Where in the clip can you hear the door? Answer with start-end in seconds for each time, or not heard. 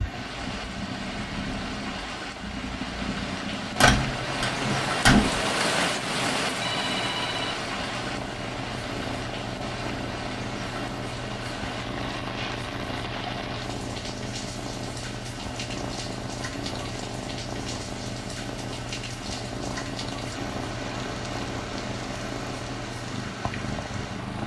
3.8-5.5.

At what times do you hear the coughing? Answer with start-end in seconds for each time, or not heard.
not heard.